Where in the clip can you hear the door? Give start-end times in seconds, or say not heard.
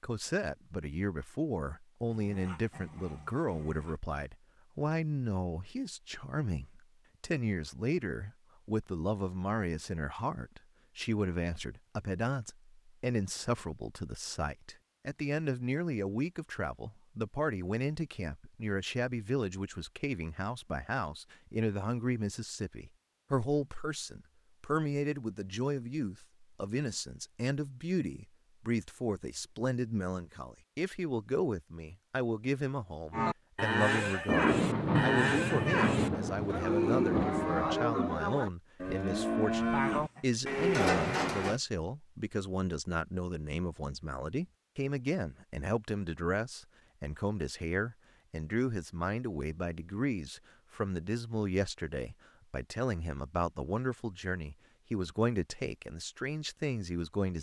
not heard.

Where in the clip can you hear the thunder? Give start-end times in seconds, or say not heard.
34.2-37.8.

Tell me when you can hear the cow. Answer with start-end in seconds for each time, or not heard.
33.1-41.6.